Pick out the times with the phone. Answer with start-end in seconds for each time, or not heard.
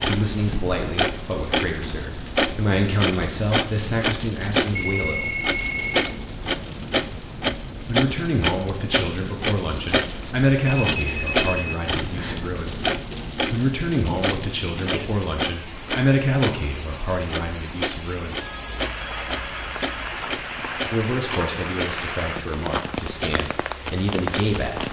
4.7-6.2, 10.7-12.6, 18.4-20.2.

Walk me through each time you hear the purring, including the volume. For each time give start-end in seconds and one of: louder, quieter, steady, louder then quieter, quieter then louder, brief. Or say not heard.
not heard.